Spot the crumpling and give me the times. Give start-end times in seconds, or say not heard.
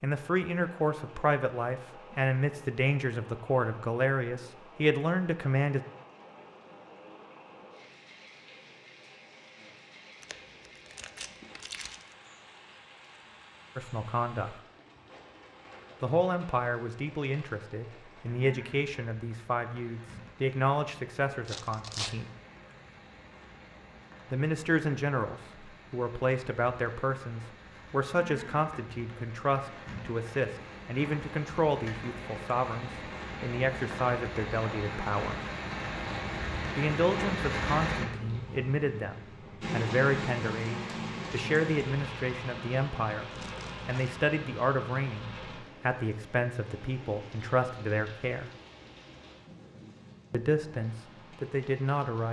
10.2-12.1, 21.4-22.1, 43.3-44.2.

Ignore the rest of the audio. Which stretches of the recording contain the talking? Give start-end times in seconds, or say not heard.
0.0-5.8, 13.8-14.6, 16.0-22.3, 24.3-35.4, 36.8-48.5, 50.3-52.2.